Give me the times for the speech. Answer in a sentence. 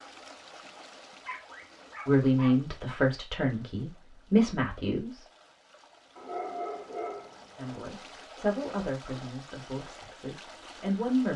You can hear the speech from 2.0 to 5.2 s and from 7.5 to 11.3 s.